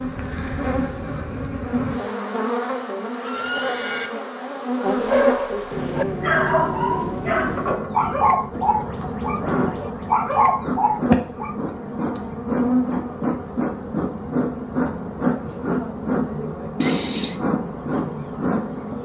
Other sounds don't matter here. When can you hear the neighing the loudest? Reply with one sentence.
The volume of the neighing peaks at 17 seconds.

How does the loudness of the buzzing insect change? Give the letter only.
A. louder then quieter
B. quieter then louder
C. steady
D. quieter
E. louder
C.